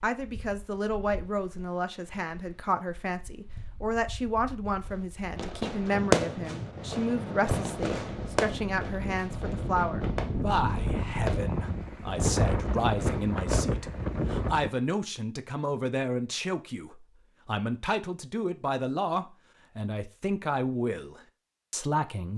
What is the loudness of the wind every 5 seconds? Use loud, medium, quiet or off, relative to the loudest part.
quiet, medium, loud, off, off.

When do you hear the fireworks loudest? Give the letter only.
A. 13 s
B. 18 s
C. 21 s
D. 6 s
D.